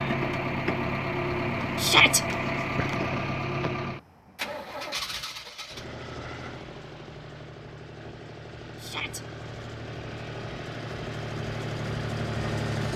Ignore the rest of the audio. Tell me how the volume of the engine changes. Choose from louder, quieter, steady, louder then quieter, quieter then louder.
quieter then louder.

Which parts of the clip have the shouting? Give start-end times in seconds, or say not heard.
1.8-2.2, 8.8-9.2.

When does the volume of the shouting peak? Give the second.
2 s.